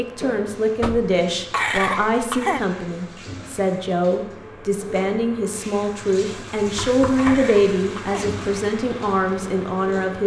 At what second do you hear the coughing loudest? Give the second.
2 s.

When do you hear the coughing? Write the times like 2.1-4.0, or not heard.
1.5-2.6, 7.2-8.3.